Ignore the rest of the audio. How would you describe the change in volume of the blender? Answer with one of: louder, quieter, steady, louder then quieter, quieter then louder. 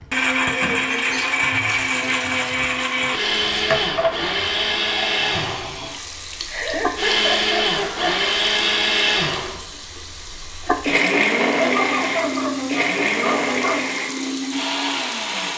steady.